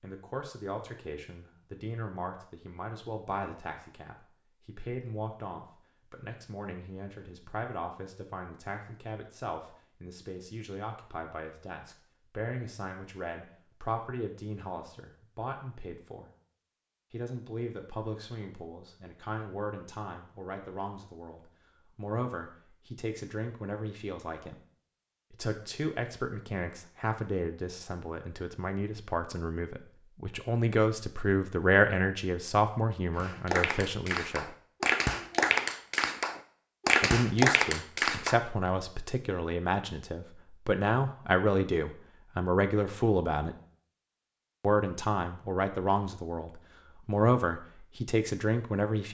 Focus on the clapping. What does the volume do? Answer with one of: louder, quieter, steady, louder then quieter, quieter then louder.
louder.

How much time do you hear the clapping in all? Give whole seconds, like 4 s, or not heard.
5 s.